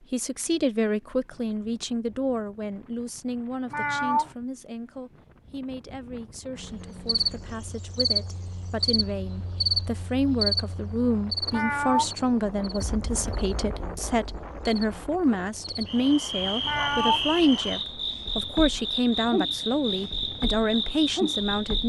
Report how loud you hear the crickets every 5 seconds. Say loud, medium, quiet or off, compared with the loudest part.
off, loud, loud, loud, loud.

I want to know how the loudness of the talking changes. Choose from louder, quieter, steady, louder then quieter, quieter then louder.
quieter then louder.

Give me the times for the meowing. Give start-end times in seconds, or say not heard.
3.7-4.3, 11.5-12.1, 16.6-17.2.